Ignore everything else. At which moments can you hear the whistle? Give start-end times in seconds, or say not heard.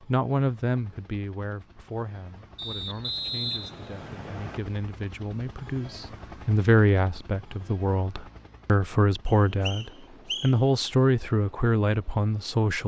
2.5-4.6, 9.2-10.7.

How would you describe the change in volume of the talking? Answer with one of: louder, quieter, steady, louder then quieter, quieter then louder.
quieter then louder.